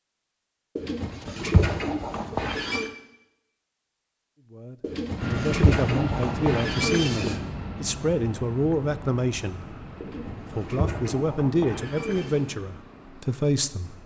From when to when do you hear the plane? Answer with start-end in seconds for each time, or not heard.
5.2-14.0.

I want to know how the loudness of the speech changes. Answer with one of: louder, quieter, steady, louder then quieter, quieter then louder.
steady.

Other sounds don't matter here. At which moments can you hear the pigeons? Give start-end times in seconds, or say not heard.
0.8-2.9, 4.8-7.4, 10.0-12.6.